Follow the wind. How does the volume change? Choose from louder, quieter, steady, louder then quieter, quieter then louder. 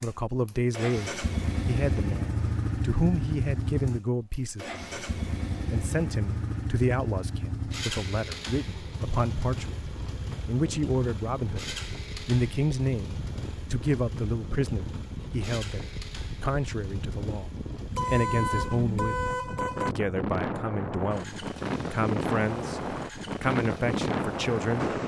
louder.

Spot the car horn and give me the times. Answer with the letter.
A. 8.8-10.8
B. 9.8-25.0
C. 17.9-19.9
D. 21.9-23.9
C.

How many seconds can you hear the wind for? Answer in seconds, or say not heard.
15 s.